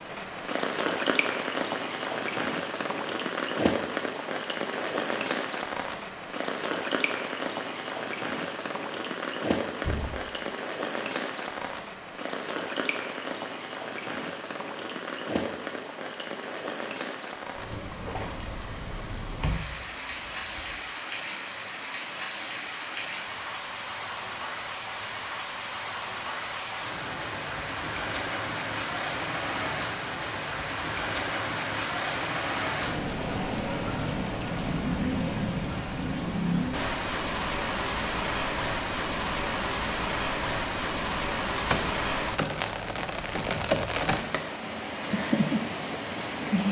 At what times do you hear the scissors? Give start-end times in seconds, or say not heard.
not heard.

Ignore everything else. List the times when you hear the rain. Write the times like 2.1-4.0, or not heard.
0.0-46.6.